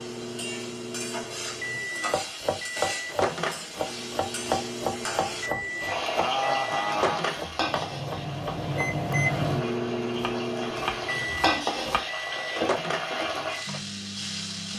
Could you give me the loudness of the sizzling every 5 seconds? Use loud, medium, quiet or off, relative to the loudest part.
medium, loud, loud.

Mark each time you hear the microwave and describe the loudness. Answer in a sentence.
You can hear the microwave from 0.0 to 14.7 s, getting louder then quieter.